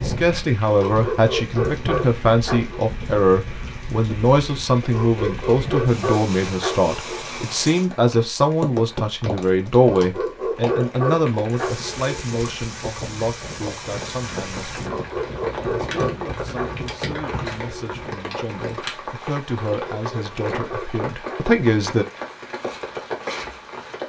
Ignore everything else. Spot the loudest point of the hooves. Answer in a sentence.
The volume of the hooves peaks at 16 seconds.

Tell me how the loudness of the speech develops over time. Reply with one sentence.
The volume of the speech goes down, then up.